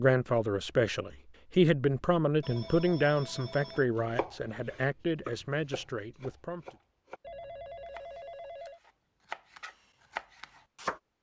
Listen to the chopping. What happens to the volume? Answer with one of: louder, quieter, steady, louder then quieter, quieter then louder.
quieter then louder.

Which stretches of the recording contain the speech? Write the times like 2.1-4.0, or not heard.
0.0-6.7.